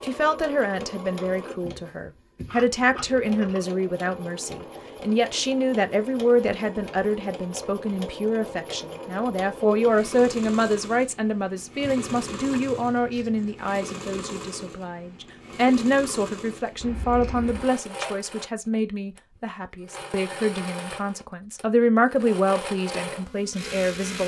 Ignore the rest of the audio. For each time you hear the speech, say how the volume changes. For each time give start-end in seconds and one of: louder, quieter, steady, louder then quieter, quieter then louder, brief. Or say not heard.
0.0-24.2 steady.